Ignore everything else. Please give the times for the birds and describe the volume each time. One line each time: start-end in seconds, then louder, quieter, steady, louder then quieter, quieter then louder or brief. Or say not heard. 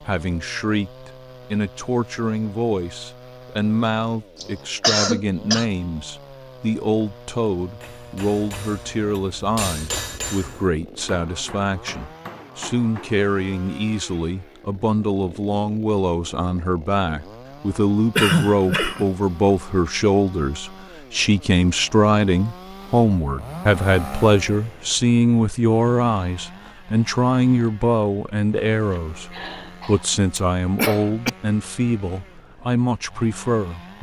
not heard.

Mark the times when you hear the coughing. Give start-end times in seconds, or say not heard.
4.4-5.7, 18.1-19.1, 29.3-31.3.